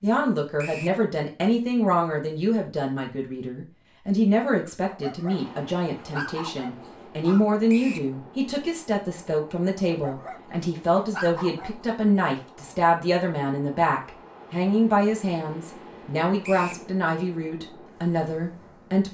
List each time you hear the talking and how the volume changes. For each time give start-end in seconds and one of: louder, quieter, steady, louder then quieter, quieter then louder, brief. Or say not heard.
0.0-19.0 steady.